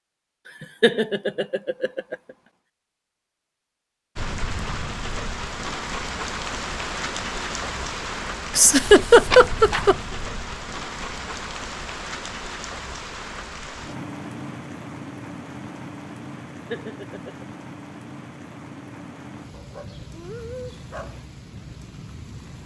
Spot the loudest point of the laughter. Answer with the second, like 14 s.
9 s.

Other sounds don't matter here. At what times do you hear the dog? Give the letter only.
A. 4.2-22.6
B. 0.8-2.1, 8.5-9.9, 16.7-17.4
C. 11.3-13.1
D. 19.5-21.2
D.